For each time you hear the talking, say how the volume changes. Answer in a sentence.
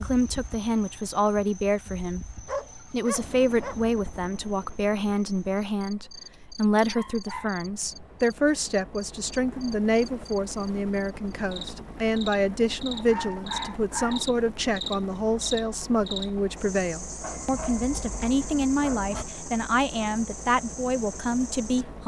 The talking can be heard from 0.0 to 22.0 s, at a steady volume.